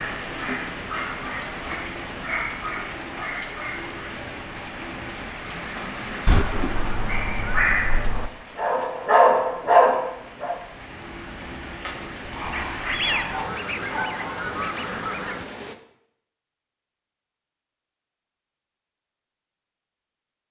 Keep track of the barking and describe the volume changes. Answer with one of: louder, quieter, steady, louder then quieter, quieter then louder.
louder then quieter.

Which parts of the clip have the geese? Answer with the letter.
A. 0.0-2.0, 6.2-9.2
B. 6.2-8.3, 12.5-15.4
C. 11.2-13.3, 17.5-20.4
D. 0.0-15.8
B.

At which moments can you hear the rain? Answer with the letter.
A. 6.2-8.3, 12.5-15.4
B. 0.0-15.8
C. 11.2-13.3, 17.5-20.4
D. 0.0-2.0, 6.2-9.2
B.